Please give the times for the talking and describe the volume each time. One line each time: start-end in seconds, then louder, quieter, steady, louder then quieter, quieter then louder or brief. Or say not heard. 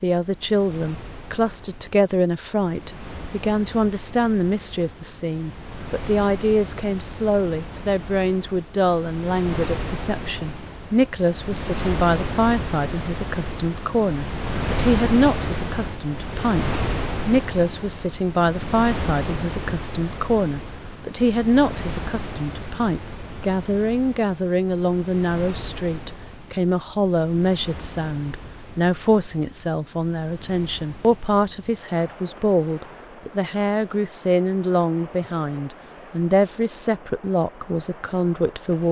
0.0-38.8 steady.